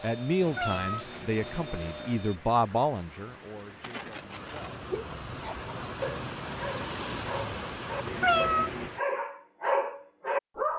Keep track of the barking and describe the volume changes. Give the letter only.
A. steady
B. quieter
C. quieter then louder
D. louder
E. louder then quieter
D.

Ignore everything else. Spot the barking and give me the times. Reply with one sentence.
You can hear the barking from 5.3 to 10.7 s.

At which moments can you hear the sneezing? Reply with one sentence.
You can hear the sneezing from 3.8 to 5.2 s.